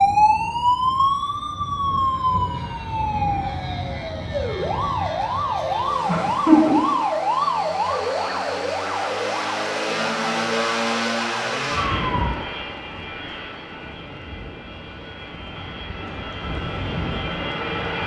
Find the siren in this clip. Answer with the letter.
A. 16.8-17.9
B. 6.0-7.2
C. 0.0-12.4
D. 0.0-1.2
C.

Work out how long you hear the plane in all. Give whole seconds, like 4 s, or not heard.
18 s.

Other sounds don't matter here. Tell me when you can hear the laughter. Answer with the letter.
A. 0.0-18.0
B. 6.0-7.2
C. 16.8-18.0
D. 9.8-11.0
B.